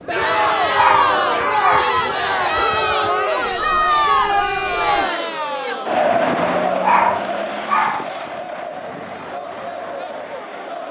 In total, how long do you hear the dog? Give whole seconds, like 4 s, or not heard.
3 s.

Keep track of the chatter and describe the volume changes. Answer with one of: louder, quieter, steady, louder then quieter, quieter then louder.
quieter.